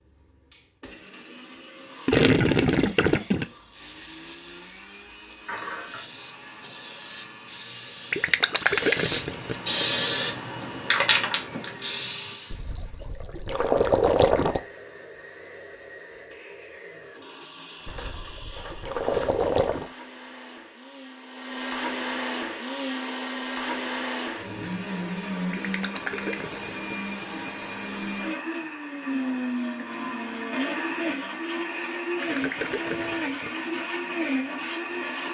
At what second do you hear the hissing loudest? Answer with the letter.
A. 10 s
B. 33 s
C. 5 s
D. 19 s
A.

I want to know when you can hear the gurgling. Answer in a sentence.
The gurgling can be heard from 2.0 to 3.5 s, from 8.1 to 9.8 s, from 12.5 to 14.6 s, from 17.9 to 19.9 s, from 25.5 to 27.5 s and from 32.2 to 33.5 s.